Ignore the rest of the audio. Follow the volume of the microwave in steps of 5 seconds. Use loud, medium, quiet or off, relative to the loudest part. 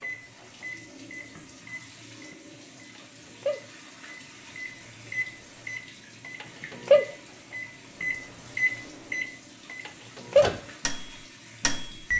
quiet, loud, loud.